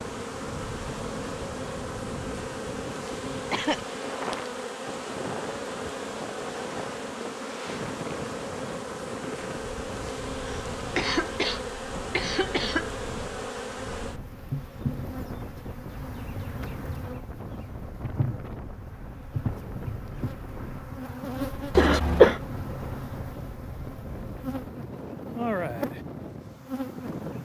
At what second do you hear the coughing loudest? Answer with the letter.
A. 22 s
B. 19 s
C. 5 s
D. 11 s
A.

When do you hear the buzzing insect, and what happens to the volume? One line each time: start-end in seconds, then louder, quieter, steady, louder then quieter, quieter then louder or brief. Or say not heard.
0.0-27.4 steady.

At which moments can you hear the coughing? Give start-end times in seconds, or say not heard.
3.5-4.0, 10.4-12.9, 21.8-22.4.